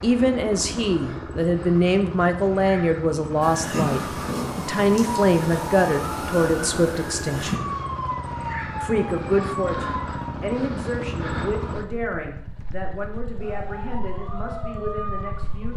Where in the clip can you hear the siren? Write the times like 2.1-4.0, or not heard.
3.4-10.3, 13.3-15.7.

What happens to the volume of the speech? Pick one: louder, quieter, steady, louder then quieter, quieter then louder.
quieter.